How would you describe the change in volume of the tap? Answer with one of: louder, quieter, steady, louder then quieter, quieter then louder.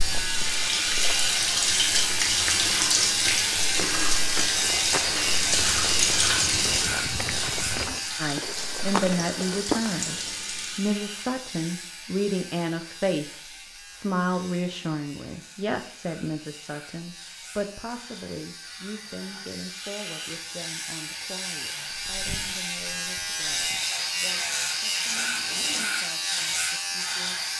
quieter.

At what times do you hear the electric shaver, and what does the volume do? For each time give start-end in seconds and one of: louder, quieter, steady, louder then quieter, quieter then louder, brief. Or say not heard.
0.0-27.5 quieter then louder.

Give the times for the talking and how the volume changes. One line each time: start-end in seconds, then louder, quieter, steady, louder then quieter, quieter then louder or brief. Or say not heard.
8.2-27.4 quieter.